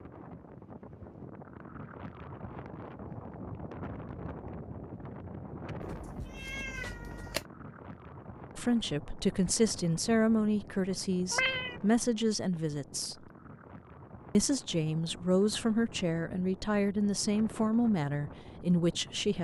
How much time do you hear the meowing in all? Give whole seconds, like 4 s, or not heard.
2 s.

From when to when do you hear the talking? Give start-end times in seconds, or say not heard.
8.6-13.2, 14.3-19.3.